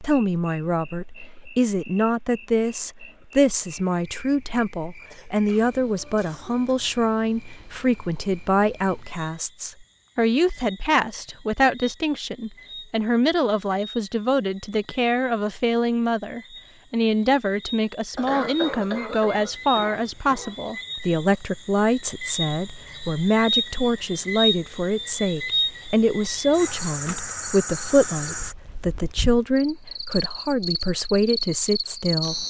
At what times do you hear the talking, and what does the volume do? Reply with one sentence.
The talking can be heard from 0.0 to 32.4 s, at a steady volume.